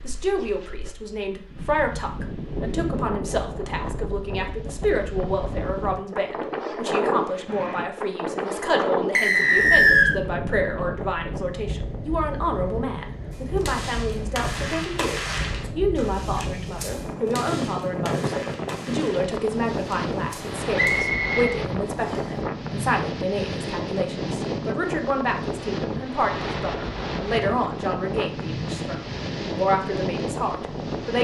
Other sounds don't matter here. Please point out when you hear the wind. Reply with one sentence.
The wind can be heard from 0.0 to 31.1 s.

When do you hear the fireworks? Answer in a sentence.
The fireworks can be heard from 13.3 to 21.1 s.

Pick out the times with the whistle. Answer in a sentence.
The whistle can be heard from 9.2 to 10.2 s and from 20.8 to 22.2 s.